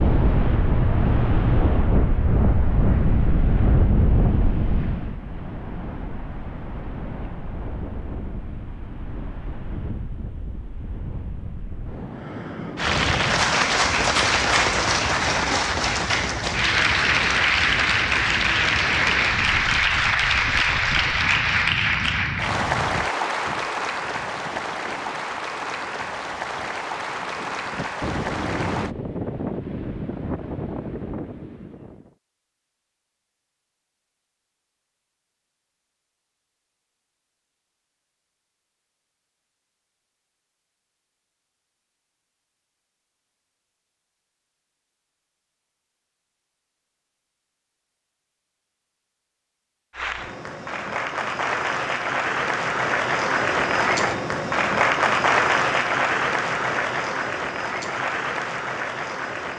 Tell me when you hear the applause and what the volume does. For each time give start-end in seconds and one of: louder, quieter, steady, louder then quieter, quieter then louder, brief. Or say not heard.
12.8-28.9 quieter
49.9-59.5 louder then quieter.